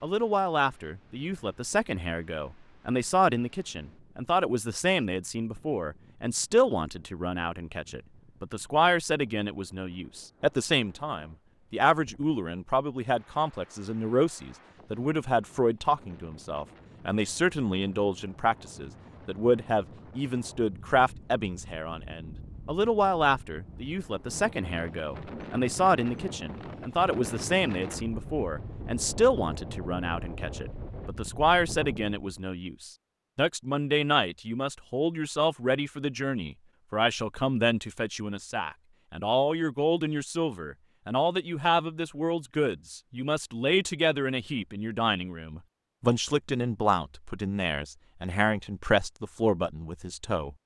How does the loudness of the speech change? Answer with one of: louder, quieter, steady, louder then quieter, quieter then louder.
steady.